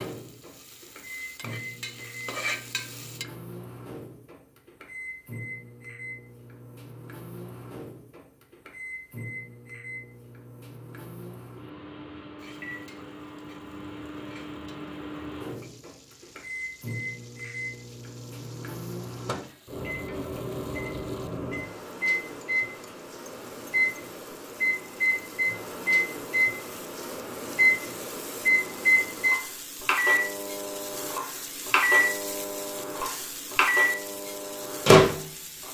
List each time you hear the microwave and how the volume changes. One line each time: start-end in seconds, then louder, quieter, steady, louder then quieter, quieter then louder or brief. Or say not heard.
0.0-35.6 louder.